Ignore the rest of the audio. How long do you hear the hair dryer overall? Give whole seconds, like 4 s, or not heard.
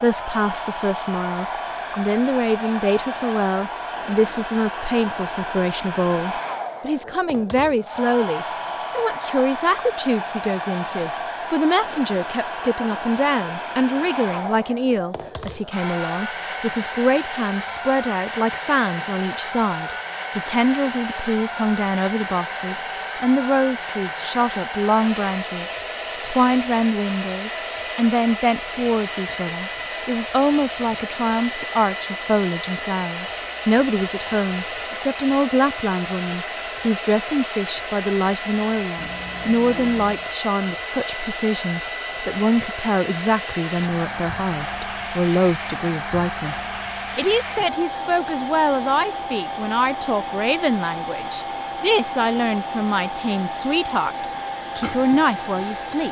56 s.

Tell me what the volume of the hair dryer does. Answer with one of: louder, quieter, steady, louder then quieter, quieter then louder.
steady.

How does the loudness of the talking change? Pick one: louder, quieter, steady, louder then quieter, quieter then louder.
steady.